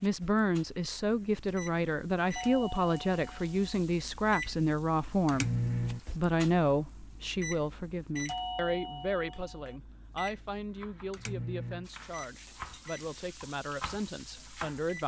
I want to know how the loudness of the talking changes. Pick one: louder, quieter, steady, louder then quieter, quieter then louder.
quieter.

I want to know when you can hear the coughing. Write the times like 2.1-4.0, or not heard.
not heard.